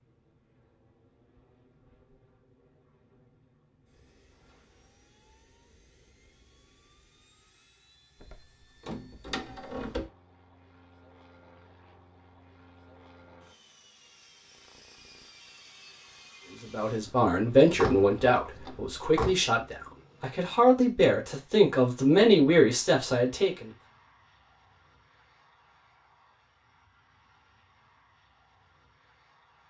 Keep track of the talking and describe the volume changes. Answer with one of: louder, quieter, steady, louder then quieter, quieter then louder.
quieter then louder.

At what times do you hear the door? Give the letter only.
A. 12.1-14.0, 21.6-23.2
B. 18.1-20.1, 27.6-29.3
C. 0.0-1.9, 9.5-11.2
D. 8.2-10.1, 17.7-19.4
D.